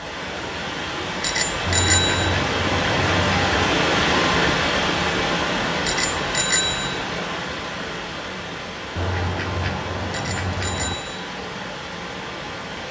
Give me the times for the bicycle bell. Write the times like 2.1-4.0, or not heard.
1.2-2.4, 5.8-7.0, 10.1-11.2.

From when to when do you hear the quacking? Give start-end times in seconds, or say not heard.
1.6-3.6, 8.9-10.9.